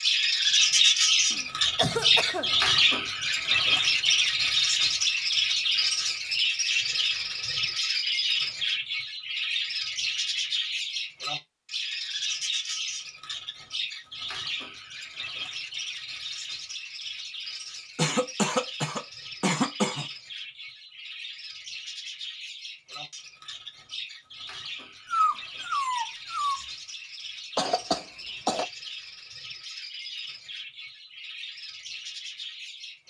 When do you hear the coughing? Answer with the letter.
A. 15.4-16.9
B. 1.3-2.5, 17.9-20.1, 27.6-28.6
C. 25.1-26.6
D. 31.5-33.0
B.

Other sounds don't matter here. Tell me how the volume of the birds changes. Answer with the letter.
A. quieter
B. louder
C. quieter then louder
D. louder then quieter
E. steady
A.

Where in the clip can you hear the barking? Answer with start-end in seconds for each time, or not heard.
25.1-26.6.